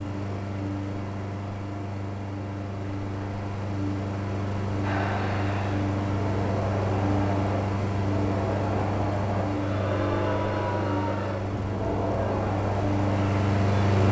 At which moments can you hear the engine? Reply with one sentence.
You can hear the engine from 0.0 to 14.0 s.